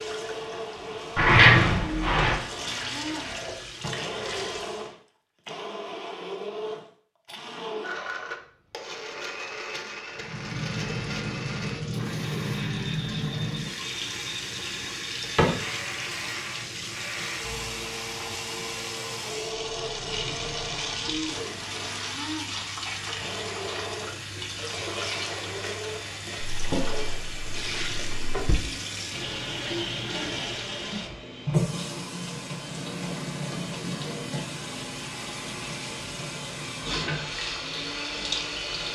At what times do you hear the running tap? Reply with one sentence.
You can hear the running tap from 0.0 to 4.9 s and from 10.2 to 38.8 s.